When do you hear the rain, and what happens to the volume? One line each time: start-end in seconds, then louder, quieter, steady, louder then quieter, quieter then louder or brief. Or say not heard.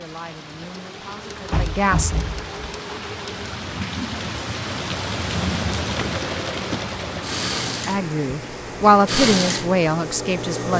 0.0-10.4 louder then quieter.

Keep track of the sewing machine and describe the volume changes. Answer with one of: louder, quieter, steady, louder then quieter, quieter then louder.
louder.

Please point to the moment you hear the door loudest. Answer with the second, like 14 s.
2 s.